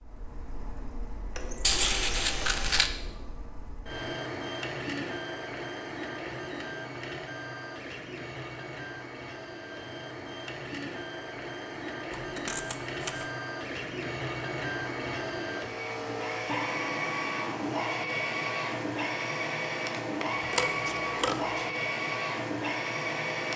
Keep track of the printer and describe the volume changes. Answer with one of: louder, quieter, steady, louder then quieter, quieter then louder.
louder.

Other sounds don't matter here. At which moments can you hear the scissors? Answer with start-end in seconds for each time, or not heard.
1.6-2.9, 12.2-13.2, 20.5-21.7.